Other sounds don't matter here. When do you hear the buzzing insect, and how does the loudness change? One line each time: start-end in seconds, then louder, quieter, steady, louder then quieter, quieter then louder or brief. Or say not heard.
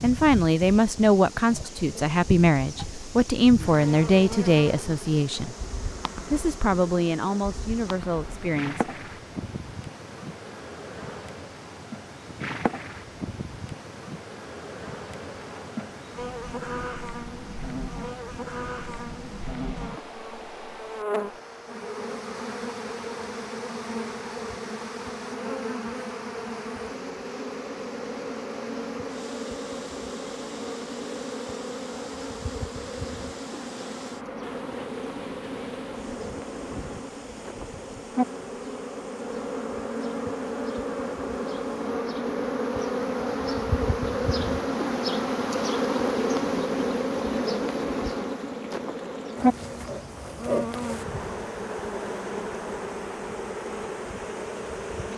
0.0-55.1 louder.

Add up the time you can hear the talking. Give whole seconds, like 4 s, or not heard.
8 s.